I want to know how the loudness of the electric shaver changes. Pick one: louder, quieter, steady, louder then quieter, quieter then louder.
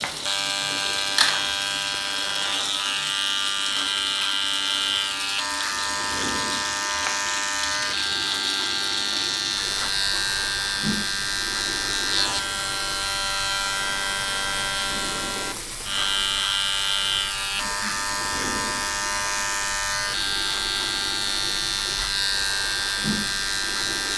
steady.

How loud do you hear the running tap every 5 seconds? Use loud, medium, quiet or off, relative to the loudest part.
loud, loud, medium, medium, medium.